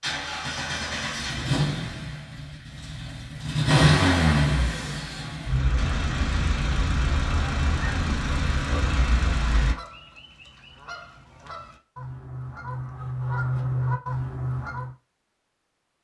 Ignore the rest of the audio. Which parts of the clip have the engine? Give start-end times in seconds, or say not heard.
0.0-9.8.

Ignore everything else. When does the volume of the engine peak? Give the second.
4 s.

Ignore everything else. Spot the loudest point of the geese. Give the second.
14 s.